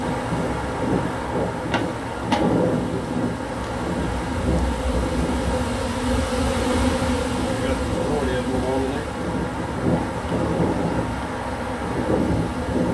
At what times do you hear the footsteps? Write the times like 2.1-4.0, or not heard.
not heard.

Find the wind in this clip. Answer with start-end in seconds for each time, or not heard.
0.0-12.8.